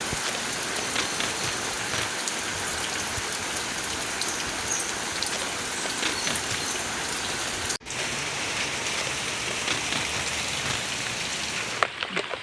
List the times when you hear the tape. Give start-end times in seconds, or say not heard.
0.1-2.1, 5.2-6.6, 8.8-10.8.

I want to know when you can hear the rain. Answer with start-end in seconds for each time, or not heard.
0.0-12.3.